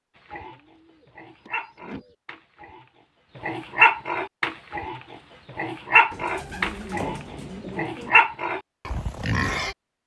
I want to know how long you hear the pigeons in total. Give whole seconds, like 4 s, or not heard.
4 s.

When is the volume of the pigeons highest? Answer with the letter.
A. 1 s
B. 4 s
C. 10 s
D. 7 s
D.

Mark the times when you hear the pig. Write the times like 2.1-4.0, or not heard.
0.1-9.8.